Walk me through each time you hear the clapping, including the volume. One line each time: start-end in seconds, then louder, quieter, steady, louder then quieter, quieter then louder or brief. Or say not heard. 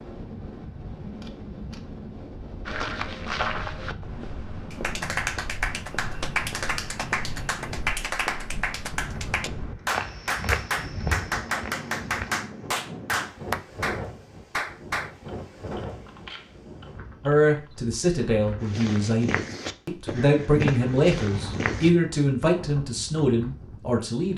4.7-15.1 steady.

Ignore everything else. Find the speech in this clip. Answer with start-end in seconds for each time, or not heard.
17.2-24.3.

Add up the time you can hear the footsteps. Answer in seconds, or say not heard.
13 s.